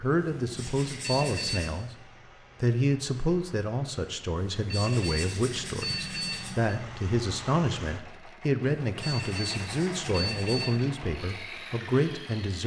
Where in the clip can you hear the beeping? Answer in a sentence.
You can hear the beeping from 1.0 to 1.7 s, from 4.7 to 6.8 s and from 9.0 to 10.8 s.